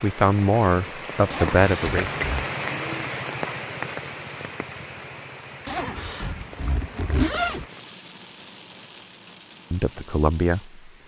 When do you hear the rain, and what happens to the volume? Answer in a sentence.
You can hear the rain from 0.0 to 11.0 s, getting quieter.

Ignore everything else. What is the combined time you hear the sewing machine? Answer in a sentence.
You can't hear the sewing machine here.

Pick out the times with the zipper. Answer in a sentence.
You can hear the zipper from 1.3 to 2.5 s and from 5.7 to 7.7 s.